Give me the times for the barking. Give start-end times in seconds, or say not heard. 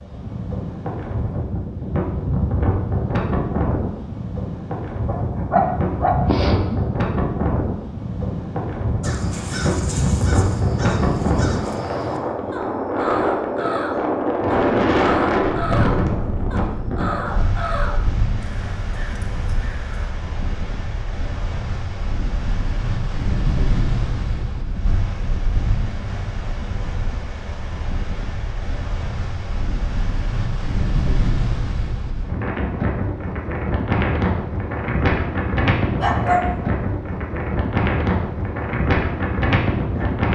5.0-6.8, 36.0-36.5.